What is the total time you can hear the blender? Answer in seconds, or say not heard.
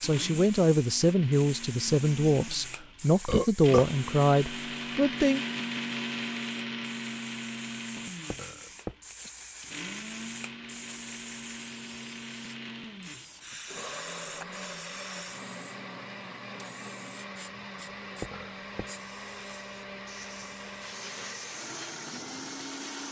23 s.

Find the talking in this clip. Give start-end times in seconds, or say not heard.
0.0-5.5.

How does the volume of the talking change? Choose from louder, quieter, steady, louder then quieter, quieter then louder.
steady.